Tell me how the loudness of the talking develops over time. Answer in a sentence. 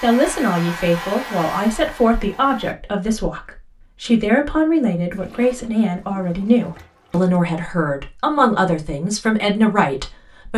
The loudness of the talking stays about the same.